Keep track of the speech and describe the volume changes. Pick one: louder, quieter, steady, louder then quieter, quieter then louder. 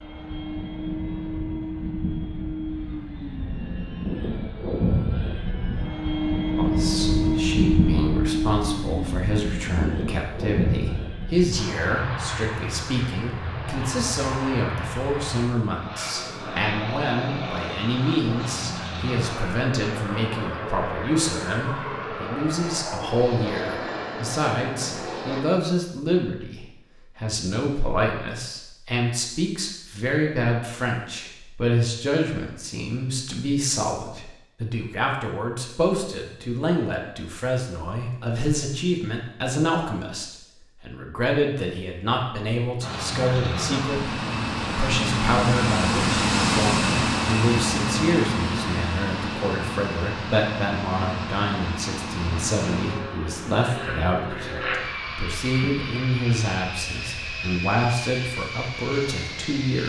steady.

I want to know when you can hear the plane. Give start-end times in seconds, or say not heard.
0.0-25.4, 42.8-59.8.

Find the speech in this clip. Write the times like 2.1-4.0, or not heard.
6.5-59.8.